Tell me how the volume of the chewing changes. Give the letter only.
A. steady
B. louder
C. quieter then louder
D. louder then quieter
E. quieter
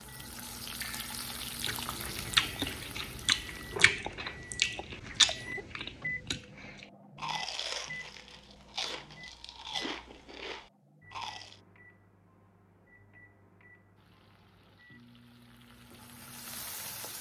E.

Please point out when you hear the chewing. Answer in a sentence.
The chewing can be heard from 0.8 to 11.6 s.